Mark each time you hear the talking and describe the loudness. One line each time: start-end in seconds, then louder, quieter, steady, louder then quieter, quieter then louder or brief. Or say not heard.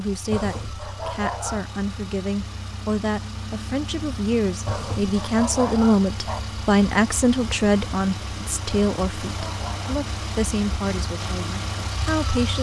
0.0-12.5 louder then quieter.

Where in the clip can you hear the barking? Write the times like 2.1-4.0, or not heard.
0.3-1.7, 4.7-6.4, 8.7-10.1.